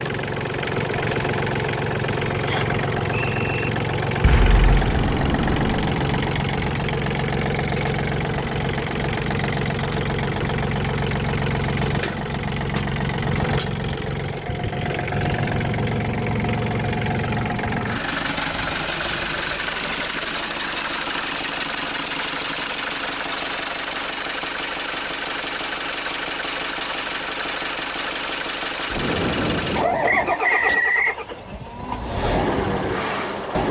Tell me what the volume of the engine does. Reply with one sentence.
The loudness of the engine stays about the same.